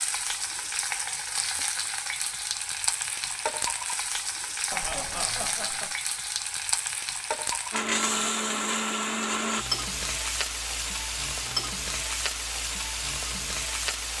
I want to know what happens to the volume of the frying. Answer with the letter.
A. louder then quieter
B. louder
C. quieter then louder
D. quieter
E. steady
E.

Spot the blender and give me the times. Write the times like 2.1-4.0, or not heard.
7.7-9.7.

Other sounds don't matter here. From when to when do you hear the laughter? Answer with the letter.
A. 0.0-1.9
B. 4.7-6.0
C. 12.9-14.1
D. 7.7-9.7
B.